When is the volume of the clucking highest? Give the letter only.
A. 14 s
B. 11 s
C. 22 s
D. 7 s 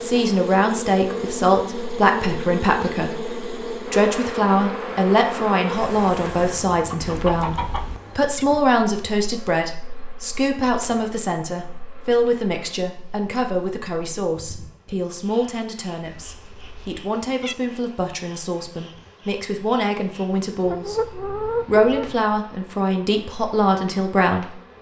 C.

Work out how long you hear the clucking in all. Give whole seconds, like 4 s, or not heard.
3 s.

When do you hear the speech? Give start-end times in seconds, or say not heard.
0.0-24.7.